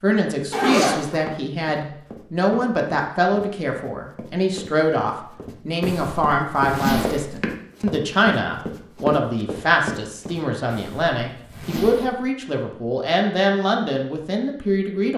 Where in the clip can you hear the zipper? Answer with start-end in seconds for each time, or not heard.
0.5-1.1, 5.8-7.4, 10.7-12.2.